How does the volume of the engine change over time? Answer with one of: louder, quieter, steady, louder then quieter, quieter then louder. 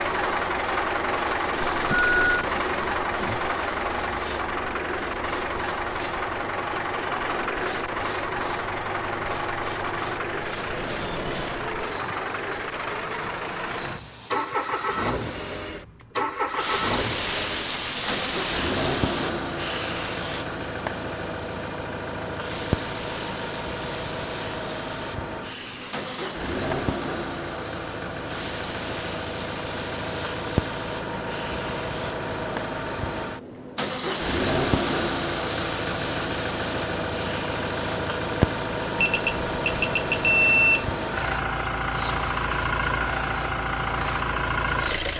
steady.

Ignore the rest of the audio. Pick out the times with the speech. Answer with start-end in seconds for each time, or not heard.
not heard.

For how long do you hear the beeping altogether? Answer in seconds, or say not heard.
3 s.